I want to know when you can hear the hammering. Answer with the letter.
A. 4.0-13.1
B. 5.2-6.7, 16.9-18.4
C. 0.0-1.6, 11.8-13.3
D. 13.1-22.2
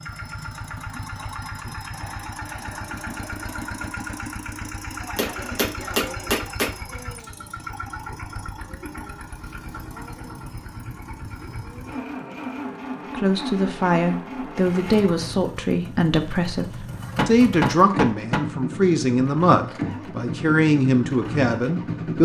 B.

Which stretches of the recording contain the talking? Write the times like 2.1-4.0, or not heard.
13.1-22.2.